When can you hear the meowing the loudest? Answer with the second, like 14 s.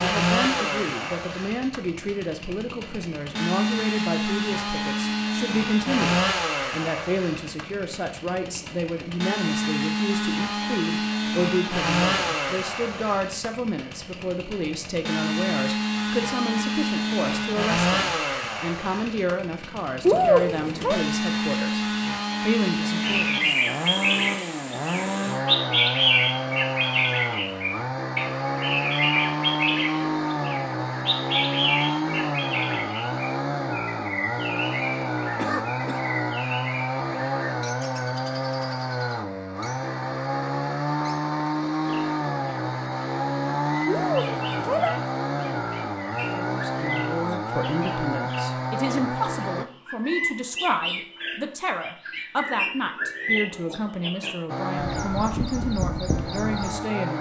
20 s.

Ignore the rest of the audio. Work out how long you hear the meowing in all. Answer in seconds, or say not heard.
2 s.